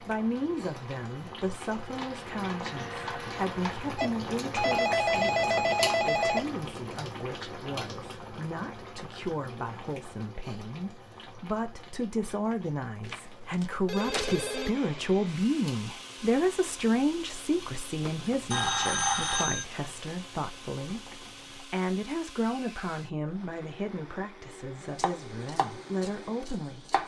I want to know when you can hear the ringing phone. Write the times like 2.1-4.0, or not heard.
4.0-6.5, 13.0-14.7, 18.0-19.6.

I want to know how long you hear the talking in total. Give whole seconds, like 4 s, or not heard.
27 s.